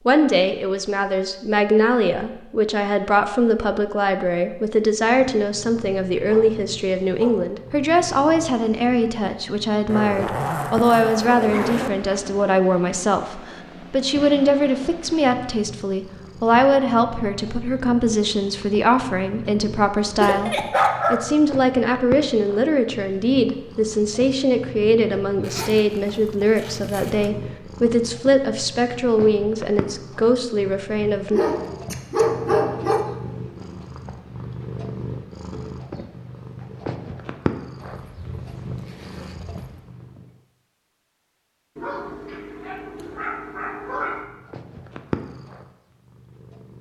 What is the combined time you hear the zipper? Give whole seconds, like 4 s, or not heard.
6 s.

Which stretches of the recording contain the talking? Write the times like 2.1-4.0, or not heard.
0.1-31.4.